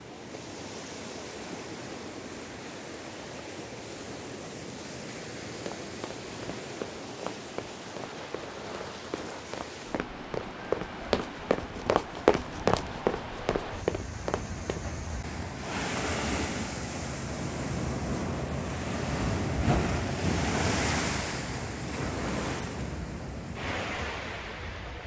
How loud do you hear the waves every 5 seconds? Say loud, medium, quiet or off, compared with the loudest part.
medium, medium, medium, loud, loud.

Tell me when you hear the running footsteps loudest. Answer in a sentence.
The volume of the running footsteps peaks at 12 seconds.